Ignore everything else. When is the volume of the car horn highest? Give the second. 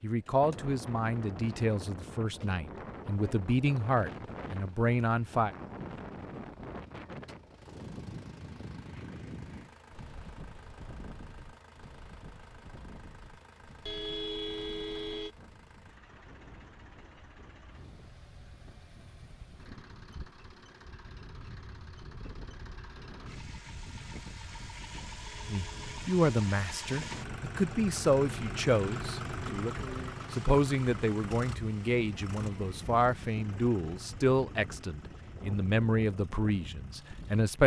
14 s.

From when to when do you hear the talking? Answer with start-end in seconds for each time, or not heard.
0.0-5.5, 25.4-37.6.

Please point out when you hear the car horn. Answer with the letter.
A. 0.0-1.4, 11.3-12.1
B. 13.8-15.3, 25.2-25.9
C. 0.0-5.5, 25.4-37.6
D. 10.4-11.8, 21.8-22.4
B.